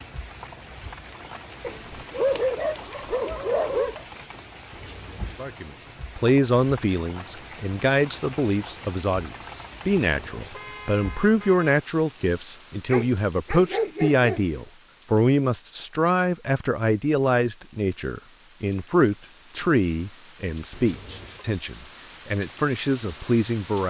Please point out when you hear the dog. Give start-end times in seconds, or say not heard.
1.6-4.0, 12.8-14.6.